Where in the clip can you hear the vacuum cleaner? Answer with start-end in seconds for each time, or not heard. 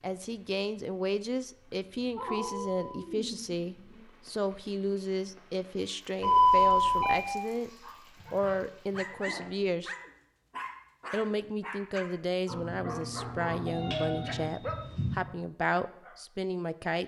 not heard.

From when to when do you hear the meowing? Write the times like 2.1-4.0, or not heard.
2.1-4.0, 8.2-9.5, 12.5-14.5.